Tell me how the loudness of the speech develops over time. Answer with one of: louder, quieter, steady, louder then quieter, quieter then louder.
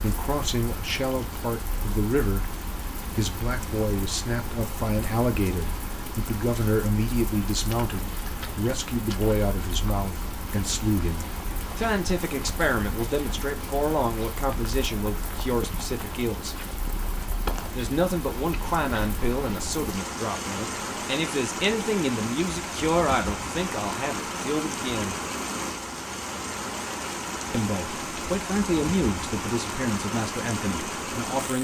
steady.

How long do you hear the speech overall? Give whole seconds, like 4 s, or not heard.
28 s.